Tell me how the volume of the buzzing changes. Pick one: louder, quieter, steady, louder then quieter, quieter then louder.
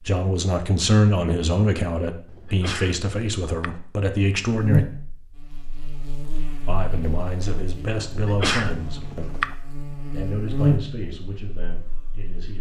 louder.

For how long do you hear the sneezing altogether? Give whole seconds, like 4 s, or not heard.
3 s.